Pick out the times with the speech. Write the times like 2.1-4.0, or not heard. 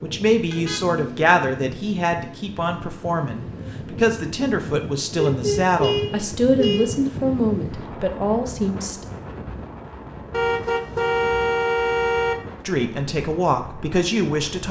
0.0-9.0, 12.7-14.6.